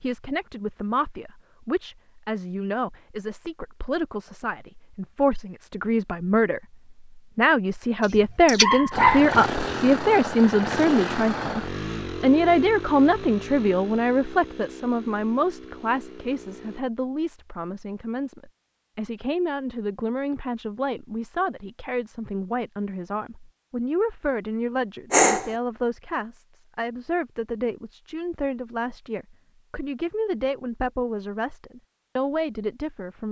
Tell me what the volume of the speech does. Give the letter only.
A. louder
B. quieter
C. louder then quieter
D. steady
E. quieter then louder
C.